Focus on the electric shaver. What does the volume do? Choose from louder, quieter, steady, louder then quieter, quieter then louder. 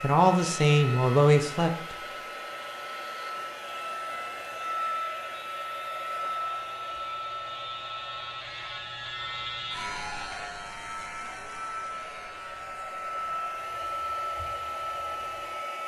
louder then quieter.